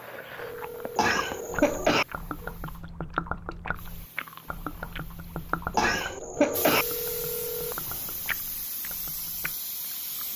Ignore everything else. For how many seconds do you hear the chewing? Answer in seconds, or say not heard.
7 s.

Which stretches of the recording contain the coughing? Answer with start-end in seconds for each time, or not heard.
0.9-2.0, 5.7-6.8.